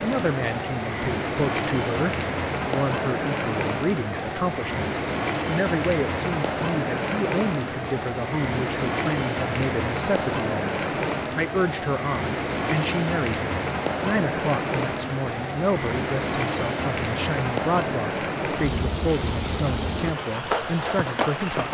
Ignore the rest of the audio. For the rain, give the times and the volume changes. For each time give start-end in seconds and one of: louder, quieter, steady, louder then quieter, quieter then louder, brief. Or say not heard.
0.0-21.6 steady.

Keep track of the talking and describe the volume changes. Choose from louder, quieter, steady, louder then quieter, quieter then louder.
steady.